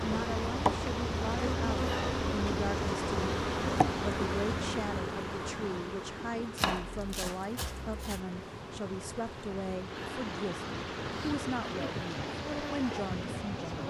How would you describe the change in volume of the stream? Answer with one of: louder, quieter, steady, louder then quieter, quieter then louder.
quieter then louder.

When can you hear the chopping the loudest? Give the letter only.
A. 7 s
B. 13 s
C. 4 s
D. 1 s
A.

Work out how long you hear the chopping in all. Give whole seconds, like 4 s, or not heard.
2 s.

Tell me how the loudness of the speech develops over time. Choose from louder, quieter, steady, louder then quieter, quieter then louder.
steady.